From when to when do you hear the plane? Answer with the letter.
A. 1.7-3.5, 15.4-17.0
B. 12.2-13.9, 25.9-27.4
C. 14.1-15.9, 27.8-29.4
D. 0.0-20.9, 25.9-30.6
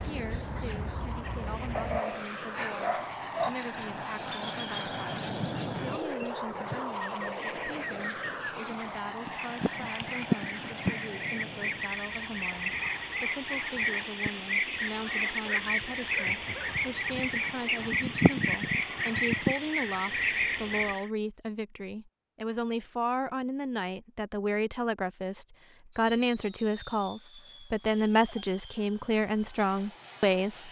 D.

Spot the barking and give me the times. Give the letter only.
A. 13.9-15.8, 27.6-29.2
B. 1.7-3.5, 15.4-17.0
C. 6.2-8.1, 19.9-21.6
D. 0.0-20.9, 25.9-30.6
B.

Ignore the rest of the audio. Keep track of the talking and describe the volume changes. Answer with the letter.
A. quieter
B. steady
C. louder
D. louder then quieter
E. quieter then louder
C.